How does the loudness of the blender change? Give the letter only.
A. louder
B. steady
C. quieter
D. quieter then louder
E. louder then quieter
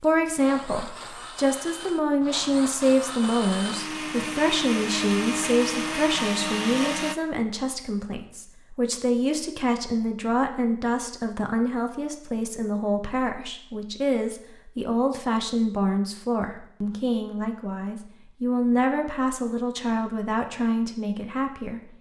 A.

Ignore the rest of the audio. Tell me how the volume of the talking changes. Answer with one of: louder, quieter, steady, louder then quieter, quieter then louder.
steady.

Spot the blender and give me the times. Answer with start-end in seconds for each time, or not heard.
0.0-7.2.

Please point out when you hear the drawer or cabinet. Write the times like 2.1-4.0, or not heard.
not heard.